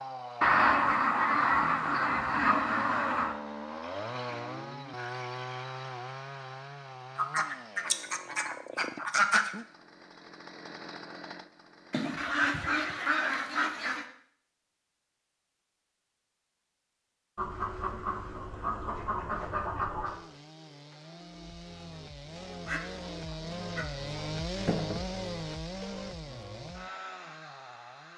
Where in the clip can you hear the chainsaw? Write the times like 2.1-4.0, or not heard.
0.0-11.9, 20.1-28.1.